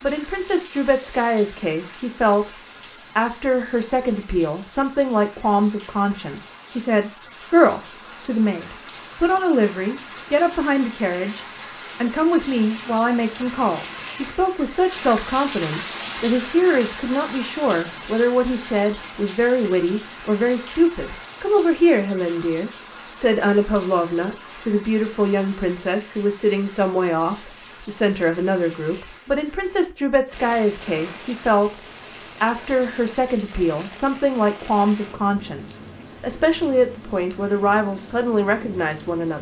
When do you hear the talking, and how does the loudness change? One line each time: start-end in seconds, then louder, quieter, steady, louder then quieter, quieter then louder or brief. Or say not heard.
0.0-39.3 steady.